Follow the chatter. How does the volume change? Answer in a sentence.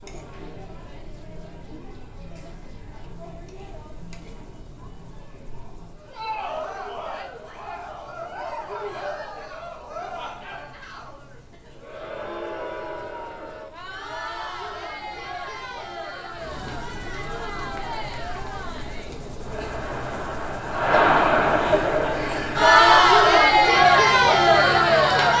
The loudness of the chatter goes up.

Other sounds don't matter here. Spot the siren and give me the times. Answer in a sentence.
The siren can't be heard in this clip.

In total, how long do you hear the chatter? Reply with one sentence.
The chatter can be heard for 25 seconds in total.